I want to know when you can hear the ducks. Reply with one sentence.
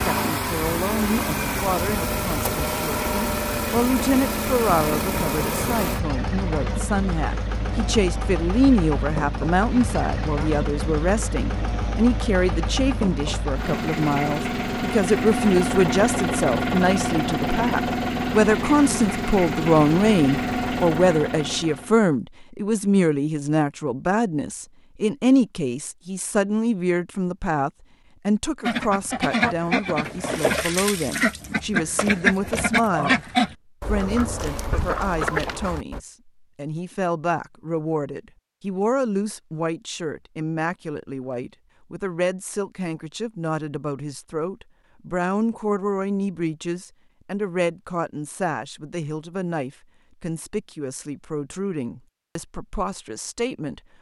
The ducks can be heard from 28.6 to 36.0 s.